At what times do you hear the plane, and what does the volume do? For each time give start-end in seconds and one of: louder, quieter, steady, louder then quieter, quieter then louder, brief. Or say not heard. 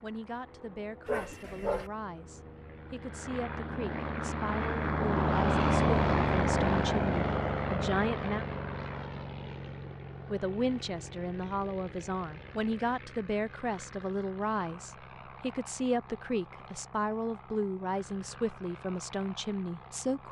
0.0-20.2 louder then quieter.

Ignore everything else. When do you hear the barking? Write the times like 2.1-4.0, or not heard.
1.1-1.9.